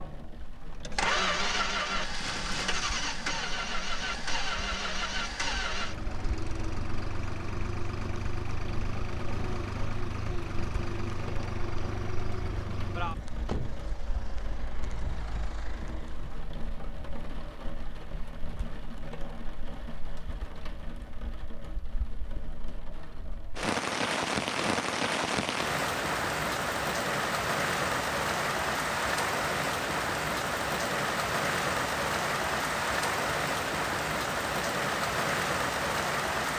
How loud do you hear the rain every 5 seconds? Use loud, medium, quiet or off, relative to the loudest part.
quiet, quiet, quiet, quiet, medium, loud, loud, loud.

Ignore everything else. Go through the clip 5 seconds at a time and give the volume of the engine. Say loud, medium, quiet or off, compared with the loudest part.
loud, medium, medium, quiet, off, off, off, off.